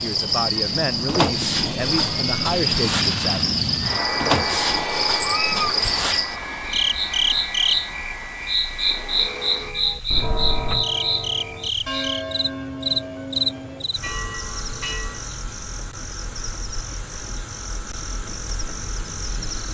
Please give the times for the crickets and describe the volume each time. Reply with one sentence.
You can hear the crickets from 0.0 to 19.6 s, getting quieter.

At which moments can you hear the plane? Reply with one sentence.
You can hear the plane from 0.0 to 19.5 s.